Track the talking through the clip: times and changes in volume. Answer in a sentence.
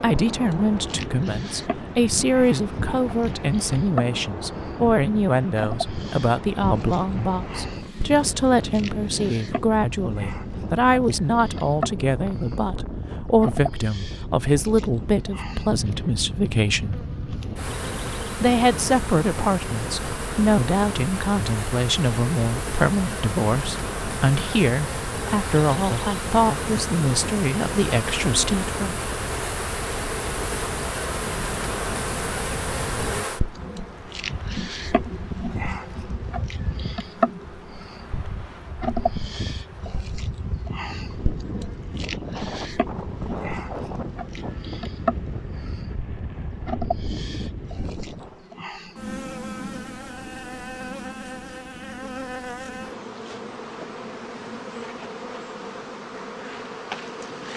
The talking can be heard from 0.0 to 17.0 s, at a steady volume; and from 18.4 to 29.0 s, at a steady volume.